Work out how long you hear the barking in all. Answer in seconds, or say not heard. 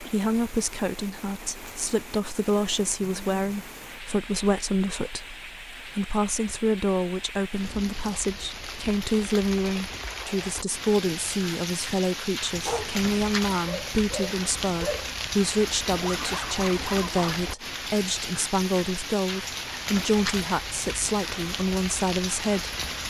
4 s.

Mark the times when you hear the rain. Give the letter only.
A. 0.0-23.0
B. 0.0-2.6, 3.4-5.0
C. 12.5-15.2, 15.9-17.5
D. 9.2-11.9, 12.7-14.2
A.